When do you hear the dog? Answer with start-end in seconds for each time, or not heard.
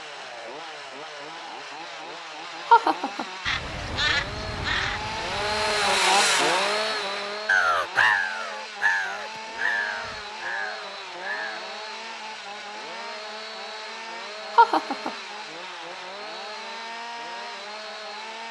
not heard.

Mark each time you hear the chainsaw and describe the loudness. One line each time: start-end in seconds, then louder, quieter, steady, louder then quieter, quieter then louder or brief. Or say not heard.
0.0-18.4 louder then quieter.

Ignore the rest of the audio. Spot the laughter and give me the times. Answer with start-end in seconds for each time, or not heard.
2.6-3.2, 14.6-15.1.